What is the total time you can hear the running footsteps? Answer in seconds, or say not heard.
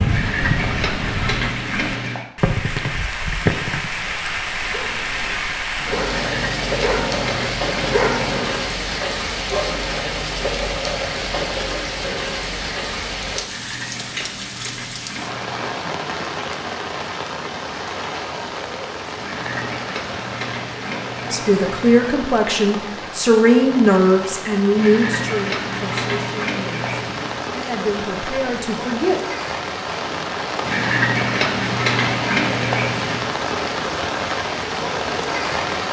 not heard.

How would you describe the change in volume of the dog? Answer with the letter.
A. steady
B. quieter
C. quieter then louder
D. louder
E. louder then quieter
E.